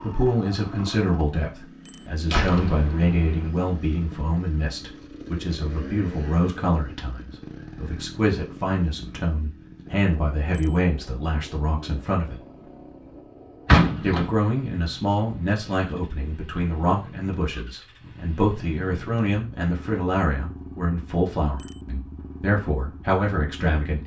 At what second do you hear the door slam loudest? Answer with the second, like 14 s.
14 s.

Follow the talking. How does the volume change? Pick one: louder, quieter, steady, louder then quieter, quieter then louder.
steady.